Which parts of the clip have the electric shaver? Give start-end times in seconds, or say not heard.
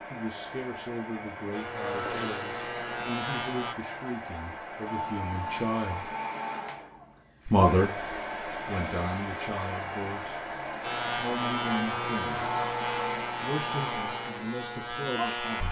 1.5-3.8, 10.8-15.6.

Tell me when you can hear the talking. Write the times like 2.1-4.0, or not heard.
0.1-6.1, 7.5-10.4, 11.1-12.4, 13.4-15.6.